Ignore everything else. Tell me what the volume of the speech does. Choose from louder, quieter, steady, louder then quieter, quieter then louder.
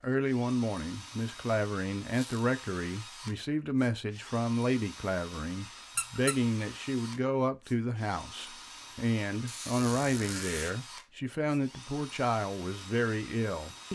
steady.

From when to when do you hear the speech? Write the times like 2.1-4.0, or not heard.
0.0-13.8.